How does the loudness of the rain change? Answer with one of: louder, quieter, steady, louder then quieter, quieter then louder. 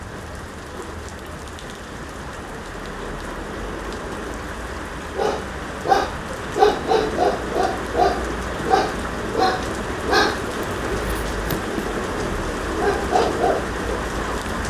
louder.